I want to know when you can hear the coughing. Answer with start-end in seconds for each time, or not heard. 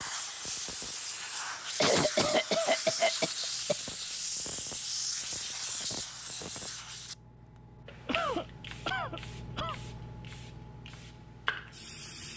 1.8-3.8, 8.1-9.8.